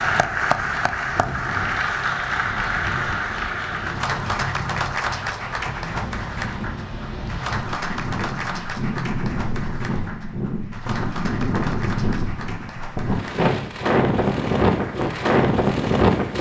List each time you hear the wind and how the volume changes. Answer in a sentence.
The wind can be heard from 0.0 to 16.3 s, getting louder.